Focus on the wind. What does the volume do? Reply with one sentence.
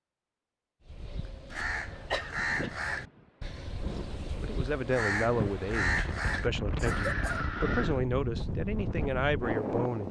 The volume of the wind goes up.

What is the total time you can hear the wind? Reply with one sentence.
You can hear the wind for 8 seconds altogether.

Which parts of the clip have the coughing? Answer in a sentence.
You can hear the coughing from 1.5 to 2.7 s and from 6.8 to 7.4 s.